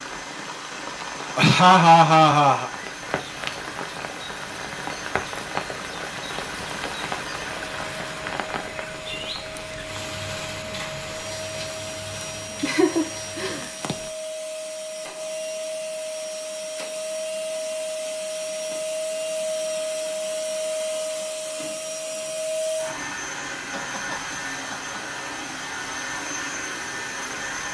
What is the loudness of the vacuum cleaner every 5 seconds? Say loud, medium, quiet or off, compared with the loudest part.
medium, medium, medium, loud, loud, loud.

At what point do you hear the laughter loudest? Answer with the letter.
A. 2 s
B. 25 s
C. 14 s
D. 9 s
A.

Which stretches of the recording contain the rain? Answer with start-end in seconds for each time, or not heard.
0.0-14.1.